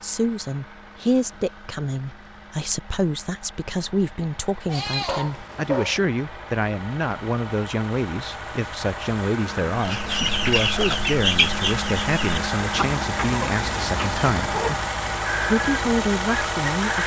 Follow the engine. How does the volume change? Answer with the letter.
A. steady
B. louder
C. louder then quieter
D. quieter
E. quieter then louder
B.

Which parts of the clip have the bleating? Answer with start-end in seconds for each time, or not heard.
4.7-6.0.